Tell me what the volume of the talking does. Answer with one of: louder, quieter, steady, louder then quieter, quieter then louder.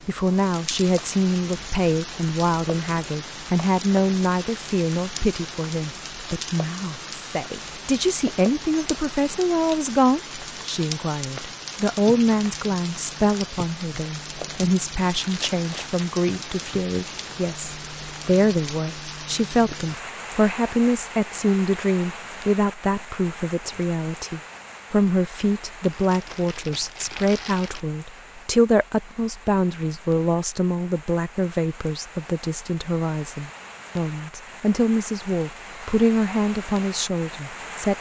steady.